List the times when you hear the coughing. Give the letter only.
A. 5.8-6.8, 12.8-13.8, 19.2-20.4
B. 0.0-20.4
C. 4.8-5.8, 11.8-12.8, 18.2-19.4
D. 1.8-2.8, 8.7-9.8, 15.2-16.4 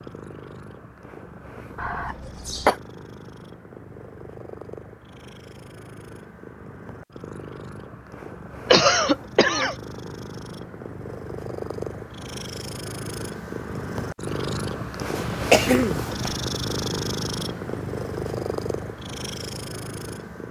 D.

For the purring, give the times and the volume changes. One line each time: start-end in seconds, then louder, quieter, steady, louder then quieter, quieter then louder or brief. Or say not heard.
0.0-20.4 louder.